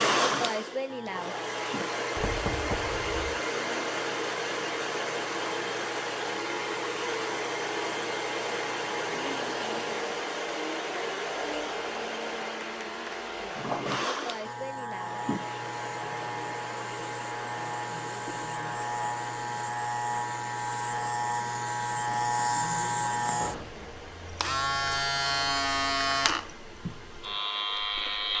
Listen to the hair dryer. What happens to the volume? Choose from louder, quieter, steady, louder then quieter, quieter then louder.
quieter.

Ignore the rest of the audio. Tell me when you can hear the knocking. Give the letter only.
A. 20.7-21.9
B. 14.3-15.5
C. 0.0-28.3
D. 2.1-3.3
D.